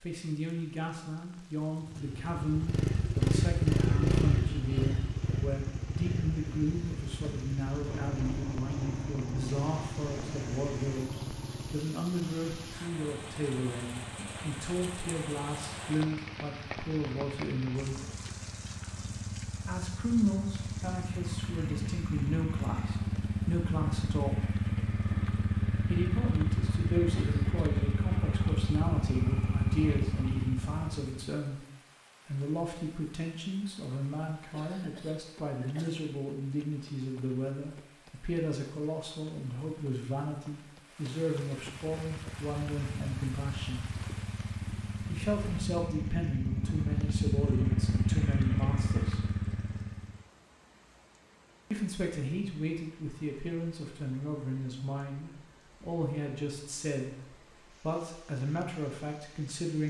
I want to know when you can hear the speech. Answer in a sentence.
You can hear the speech from 0.0 to 18.0 s, from 19.6 to 24.4 s, from 25.8 to 31.6 s, from 32.2 to 43.9 s, from 45.0 to 49.2 s and from 51.7 to 59.8 s.